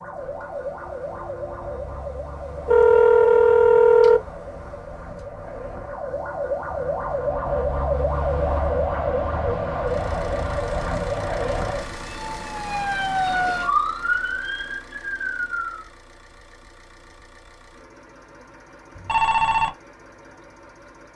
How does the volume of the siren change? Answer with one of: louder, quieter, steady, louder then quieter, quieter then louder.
louder.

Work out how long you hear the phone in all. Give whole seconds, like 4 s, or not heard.
2 s.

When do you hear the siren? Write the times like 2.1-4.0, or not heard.
0.0-15.8.